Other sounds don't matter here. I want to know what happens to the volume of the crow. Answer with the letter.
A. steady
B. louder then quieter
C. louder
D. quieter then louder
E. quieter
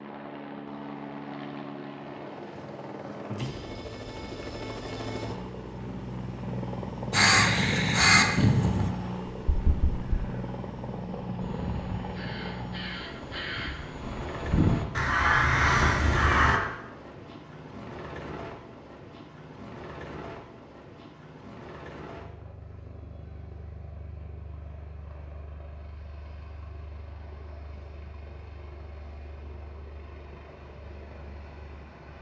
D.